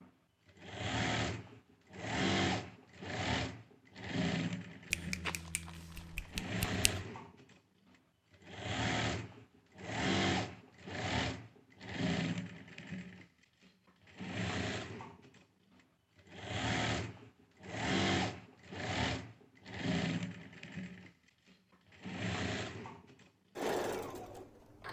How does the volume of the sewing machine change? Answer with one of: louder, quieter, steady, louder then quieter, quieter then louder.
steady.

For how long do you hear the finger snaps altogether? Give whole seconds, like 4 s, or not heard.
2 s.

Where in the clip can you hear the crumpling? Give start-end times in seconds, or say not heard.
5.2-6.3.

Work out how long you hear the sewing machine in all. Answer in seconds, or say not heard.
25 s.